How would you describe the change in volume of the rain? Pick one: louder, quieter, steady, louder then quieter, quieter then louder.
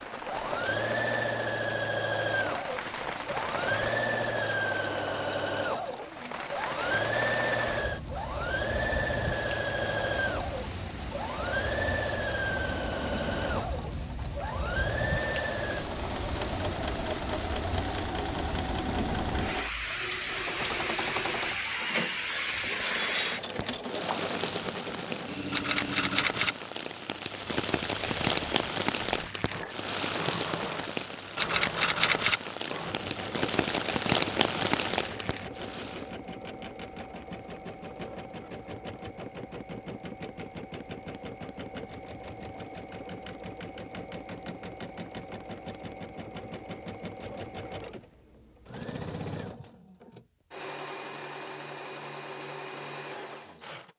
louder.